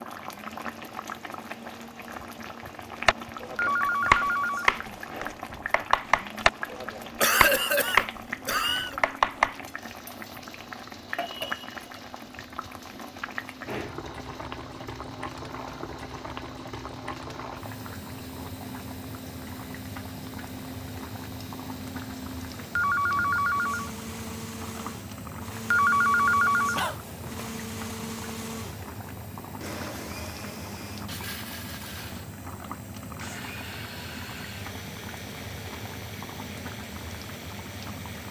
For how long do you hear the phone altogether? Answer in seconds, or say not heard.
4 s.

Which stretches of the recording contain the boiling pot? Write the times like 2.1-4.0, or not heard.
0.0-38.2.